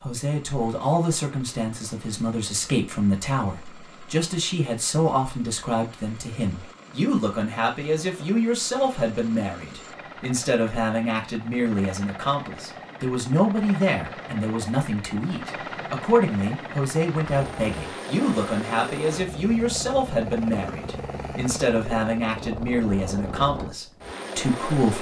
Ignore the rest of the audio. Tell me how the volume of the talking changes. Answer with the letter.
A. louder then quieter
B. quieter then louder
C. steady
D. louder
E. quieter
C.